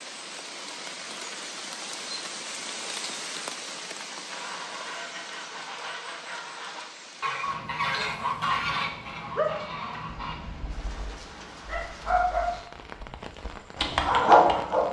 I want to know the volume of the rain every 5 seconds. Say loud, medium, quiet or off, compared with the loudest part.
loud, medium, medium.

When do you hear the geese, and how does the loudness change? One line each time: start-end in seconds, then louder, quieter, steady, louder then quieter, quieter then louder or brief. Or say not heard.
4.2-10.3 louder then quieter.